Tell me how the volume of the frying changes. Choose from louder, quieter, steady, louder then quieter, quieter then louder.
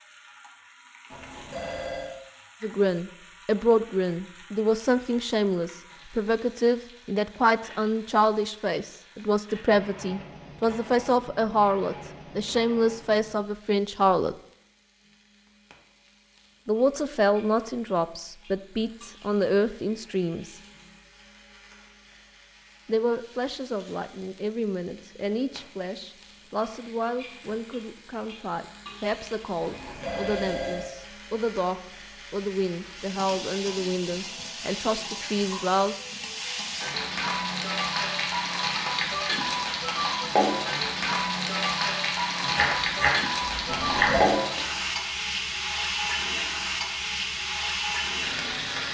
louder.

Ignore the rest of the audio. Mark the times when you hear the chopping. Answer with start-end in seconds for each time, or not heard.
42.4-44.3.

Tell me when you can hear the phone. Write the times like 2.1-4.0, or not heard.
1.1-2.1, 29.6-30.9, 43.6-44.3.